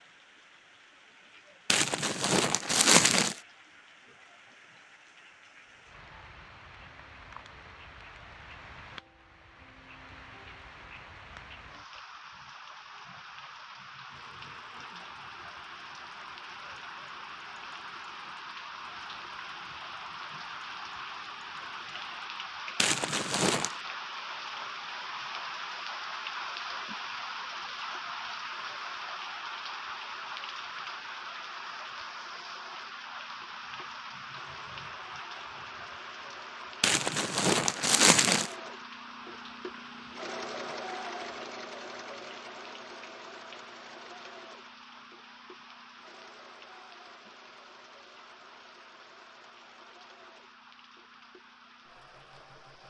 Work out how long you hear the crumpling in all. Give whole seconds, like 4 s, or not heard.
4 s.